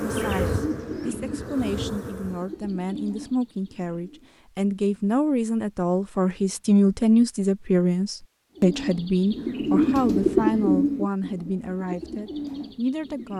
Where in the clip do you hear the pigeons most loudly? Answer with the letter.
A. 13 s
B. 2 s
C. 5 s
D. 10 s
D.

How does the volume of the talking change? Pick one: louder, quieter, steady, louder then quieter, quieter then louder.
louder then quieter.